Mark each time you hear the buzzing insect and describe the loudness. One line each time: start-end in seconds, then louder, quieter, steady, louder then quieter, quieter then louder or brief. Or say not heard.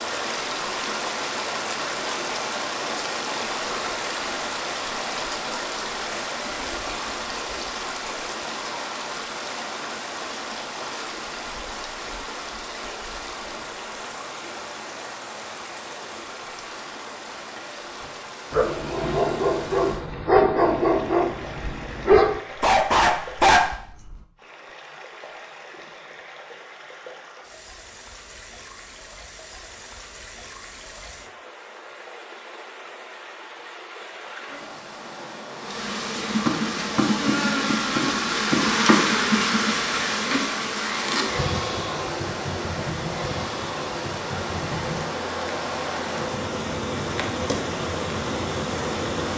35.5-49.3 quieter.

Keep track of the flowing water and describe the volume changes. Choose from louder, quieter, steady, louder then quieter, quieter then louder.
quieter then louder.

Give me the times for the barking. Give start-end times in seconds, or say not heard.
18.5-23.7.